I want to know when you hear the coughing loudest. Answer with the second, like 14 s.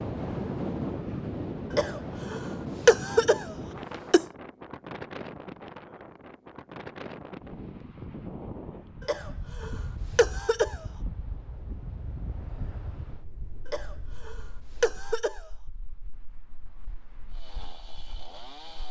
3 s.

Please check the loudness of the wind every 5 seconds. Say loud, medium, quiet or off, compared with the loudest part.
loud, medium, medium, quiet.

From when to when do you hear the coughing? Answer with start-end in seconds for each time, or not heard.
1.7-4.2, 9.1-10.8, 13.7-15.5.